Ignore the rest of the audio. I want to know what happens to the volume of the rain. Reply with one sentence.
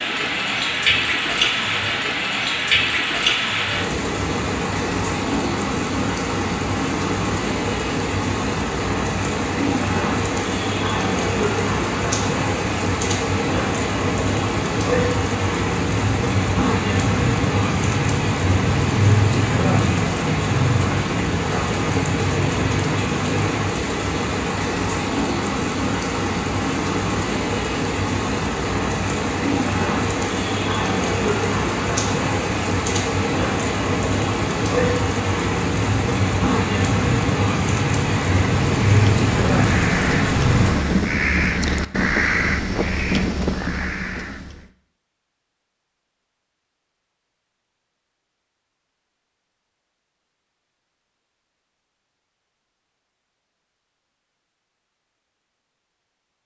The loudness of the rain stays about the same.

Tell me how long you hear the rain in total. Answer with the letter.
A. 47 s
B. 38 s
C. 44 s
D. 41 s
D.